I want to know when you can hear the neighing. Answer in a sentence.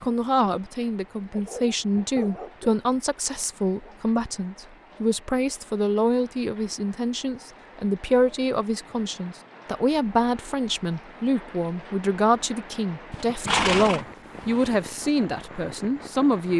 The neighing can be heard from 13.1 to 14.8 s.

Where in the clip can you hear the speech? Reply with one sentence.
The speech can be heard from 0.0 to 16.5 s.